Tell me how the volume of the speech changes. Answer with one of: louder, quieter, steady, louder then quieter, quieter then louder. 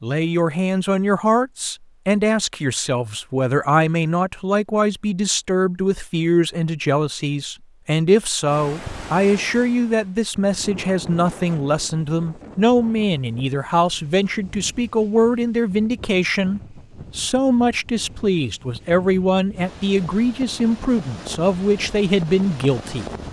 steady.